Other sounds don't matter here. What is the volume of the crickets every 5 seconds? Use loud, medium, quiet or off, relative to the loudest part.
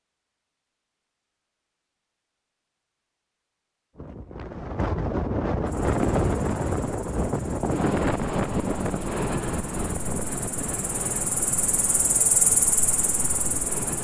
off, quiet, loud.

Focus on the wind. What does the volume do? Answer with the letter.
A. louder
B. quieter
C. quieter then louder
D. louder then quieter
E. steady
B.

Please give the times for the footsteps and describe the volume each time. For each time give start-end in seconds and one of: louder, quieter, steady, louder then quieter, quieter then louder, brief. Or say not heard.
not heard.